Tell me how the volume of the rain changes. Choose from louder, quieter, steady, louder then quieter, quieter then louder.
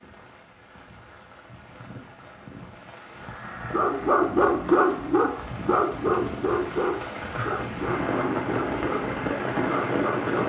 louder.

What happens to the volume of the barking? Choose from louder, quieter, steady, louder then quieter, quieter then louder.
quieter.